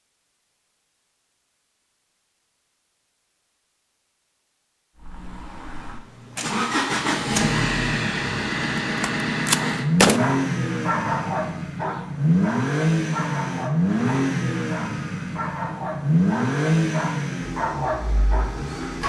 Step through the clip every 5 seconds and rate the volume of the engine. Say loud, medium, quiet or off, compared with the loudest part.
off, loud, loud, loud.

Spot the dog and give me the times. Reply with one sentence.
You can hear the dog from 9.6 to 18.6 s.